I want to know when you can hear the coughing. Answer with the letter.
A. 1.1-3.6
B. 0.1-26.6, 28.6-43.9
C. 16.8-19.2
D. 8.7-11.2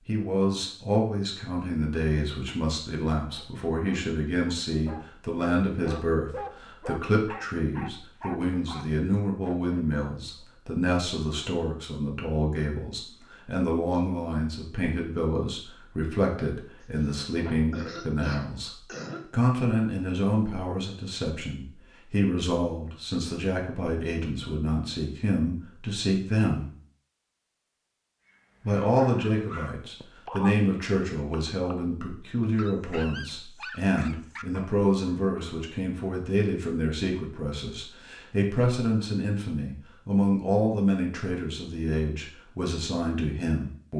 C.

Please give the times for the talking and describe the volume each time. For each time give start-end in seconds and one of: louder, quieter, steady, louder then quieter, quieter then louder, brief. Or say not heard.
0.1-26.6 steady
28.6-43.9 steady.